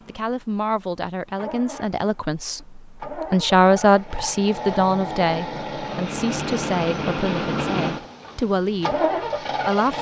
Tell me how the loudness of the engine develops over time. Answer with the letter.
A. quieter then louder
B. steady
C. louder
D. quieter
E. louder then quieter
C.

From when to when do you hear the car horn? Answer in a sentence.
The car horn can't be heard in this clip.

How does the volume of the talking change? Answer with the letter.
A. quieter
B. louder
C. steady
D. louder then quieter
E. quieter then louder
D.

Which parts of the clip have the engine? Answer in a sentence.
You can hear the engine from 0.0 to 9.9 s.